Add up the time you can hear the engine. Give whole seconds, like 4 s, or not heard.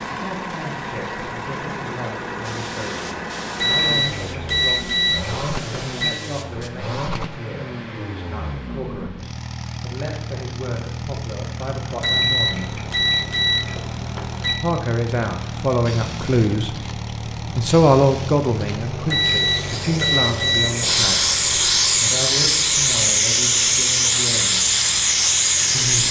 26 s.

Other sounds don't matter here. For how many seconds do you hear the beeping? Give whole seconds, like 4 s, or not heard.
7 s.